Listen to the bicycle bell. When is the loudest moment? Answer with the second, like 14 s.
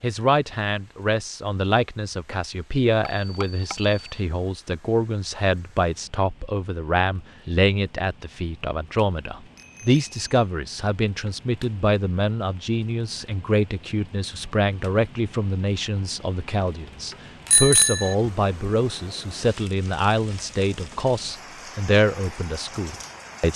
18 s.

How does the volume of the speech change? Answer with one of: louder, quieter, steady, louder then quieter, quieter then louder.
steady.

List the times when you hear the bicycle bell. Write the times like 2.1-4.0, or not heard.
3.0-4.2, 9.6-10.4, 17.5-18.1.